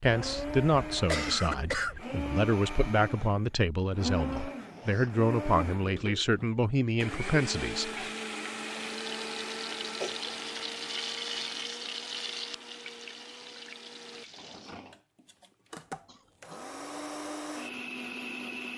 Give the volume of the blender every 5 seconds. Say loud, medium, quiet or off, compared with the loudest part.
loud, loud, medium, loud.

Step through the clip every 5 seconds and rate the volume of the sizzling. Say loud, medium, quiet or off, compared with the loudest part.
off, loud, loud, off.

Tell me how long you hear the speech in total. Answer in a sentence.
The speech can be heard for 8 seconds in total.